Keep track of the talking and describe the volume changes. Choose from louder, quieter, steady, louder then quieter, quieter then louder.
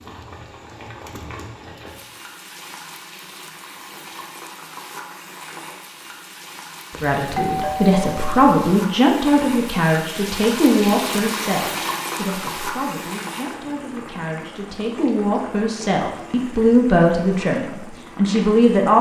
quieter then louder.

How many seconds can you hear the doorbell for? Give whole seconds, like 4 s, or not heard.
2 s.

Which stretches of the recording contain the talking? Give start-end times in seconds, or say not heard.
7.0-18.9.